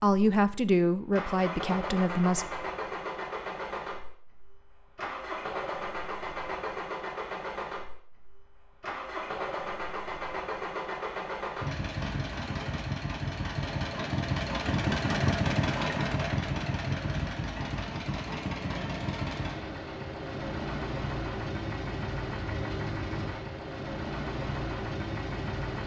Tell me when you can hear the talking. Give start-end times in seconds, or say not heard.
0.0-2.5.